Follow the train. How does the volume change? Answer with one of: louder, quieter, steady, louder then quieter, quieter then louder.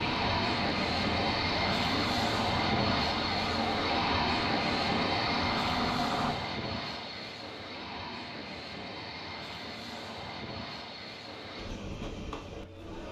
quieter.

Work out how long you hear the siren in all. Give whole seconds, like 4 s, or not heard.
6 s.